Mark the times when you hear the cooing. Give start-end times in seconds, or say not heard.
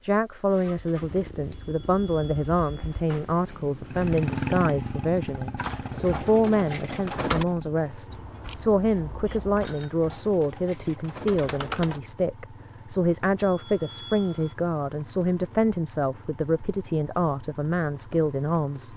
5.5-7.5, 9.6-12.0.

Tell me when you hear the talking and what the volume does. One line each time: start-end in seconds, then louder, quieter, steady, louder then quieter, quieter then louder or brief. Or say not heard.
0.0-18.9 steady.